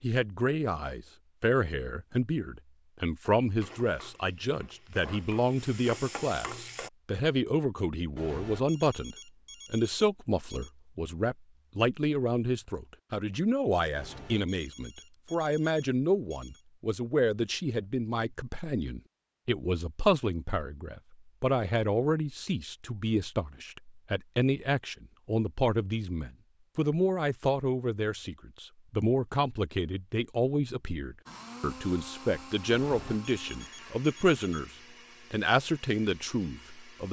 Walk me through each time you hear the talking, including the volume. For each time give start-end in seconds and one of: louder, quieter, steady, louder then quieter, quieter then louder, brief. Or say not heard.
0.0-34.7 steady
35.3-37.0 brief.